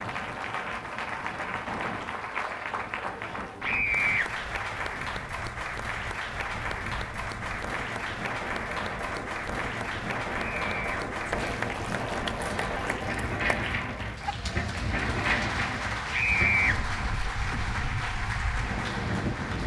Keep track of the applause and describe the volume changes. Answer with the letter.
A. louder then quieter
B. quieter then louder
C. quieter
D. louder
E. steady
E.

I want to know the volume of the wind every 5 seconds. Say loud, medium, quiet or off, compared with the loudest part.
medium, medium, loud, loud.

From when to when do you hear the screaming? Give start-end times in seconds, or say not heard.
3.6-4.2, 10.6-11.0, 16.1-16.8.